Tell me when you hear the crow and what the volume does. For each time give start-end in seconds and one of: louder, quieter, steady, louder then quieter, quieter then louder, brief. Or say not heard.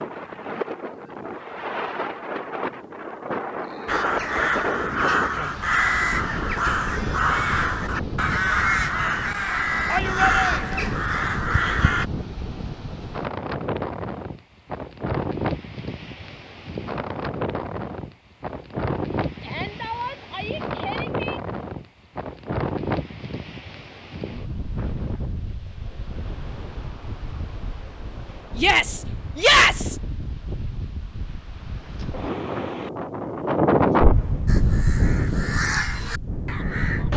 3.9-12.1 steady
34.5-37.1 brief.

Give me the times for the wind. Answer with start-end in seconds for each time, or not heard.
0.0-37.1.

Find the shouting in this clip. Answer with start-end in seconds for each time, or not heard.
9.8-10.8, 19.4-21.4, 28.6-29.9.